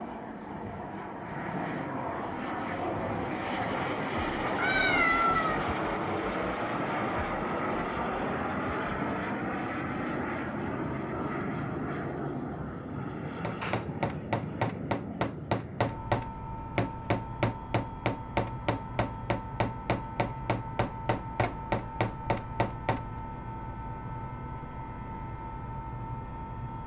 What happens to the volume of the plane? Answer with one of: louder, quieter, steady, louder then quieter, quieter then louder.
quieter.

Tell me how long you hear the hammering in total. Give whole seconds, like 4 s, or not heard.
10 s.